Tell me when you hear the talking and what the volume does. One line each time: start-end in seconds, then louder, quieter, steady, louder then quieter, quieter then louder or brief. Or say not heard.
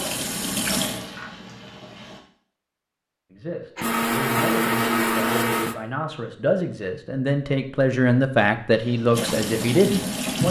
3.3-10.4 louder.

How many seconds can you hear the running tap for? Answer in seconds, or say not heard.
4 s.